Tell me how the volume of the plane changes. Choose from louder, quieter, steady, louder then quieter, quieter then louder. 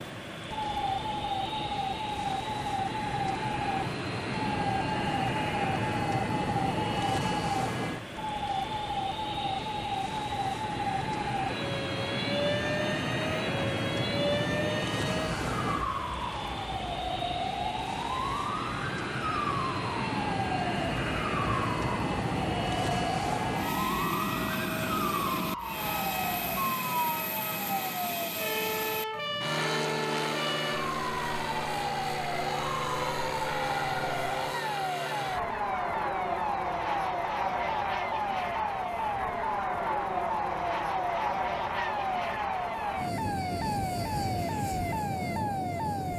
steady.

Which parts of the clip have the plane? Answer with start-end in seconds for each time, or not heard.
0.0-46.1.